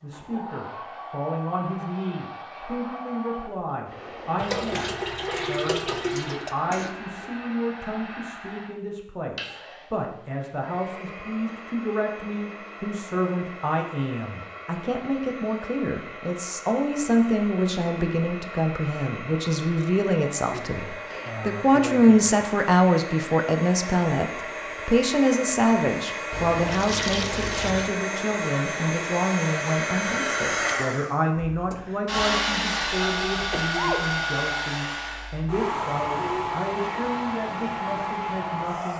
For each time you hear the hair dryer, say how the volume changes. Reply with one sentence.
You can hear the hair dryer from 0.0 to 38.9 s, getting louder.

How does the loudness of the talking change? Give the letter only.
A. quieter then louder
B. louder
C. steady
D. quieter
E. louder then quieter
E.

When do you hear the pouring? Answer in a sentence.
You can hear the pouring from 4.3 to 6.5 s and from 26.3 to 27.9 s.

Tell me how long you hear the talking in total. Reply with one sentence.
You can hear the talking for 39 seconds altogether.